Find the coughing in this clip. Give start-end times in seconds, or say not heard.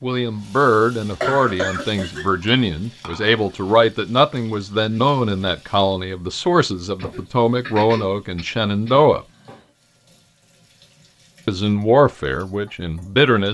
1.2-2.2, 7.0-9.6.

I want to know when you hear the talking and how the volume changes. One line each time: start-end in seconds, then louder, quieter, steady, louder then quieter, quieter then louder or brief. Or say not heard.
0.0-9.2 steady
11.4-13.4 brief.